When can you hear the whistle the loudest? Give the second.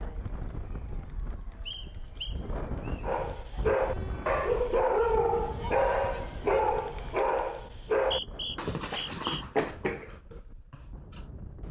8 s.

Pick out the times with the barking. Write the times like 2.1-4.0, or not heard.
3.0-11.2.